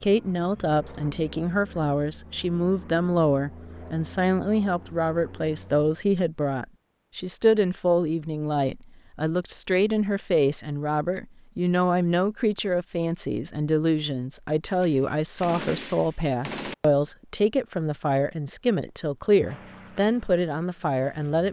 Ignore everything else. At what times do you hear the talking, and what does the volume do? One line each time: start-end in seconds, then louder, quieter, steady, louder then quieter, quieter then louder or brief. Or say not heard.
0.0-21.4 steady.